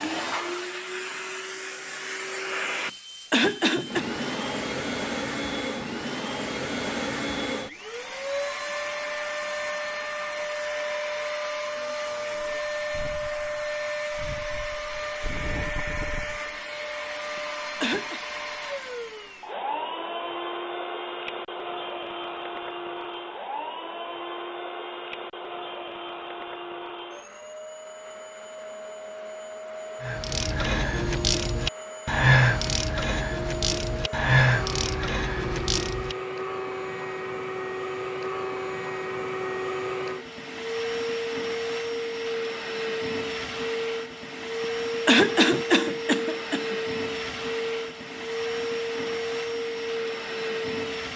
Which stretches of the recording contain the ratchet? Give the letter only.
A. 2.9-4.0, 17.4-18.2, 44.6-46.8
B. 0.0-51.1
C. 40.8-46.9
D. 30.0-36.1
D.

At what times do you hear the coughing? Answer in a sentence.
You can hear the coughing from 2.9 to 4.0 s, from 17.4 to 18.2 s and from 44.6 to 46.8 s.